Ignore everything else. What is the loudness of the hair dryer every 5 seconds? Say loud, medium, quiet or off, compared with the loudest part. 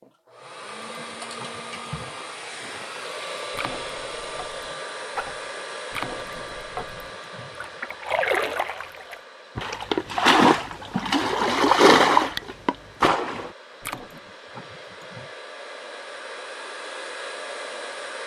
loud, loud, medium, loud.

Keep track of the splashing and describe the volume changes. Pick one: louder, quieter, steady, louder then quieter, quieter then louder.
louder.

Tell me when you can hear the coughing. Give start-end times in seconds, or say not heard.
0.8-2.1, 6.2-7.9, 13.9-15.3.